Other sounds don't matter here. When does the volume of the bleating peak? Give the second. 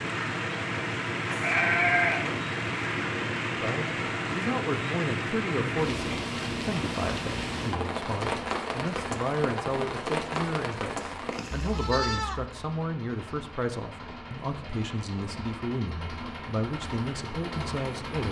2 s.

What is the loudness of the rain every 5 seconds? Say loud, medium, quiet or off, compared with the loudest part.
loud, loud, loud, off.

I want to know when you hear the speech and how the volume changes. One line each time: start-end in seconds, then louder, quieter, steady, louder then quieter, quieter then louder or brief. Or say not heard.
3.6-18.2 steady.